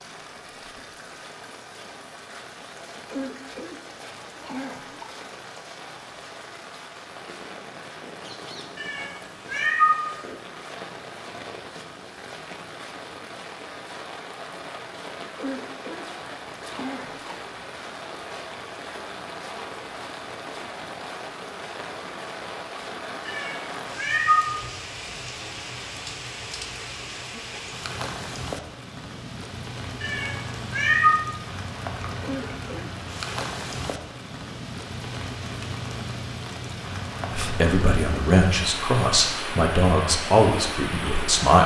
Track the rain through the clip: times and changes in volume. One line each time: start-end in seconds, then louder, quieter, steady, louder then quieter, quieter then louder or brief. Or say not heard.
0.0-41.6 louder.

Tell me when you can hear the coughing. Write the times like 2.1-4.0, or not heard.
3.1-5.0, 15.3-17.4, 32.2-33.0.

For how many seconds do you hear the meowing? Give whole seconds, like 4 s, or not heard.
4 s.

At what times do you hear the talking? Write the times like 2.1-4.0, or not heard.
37.3-41.6.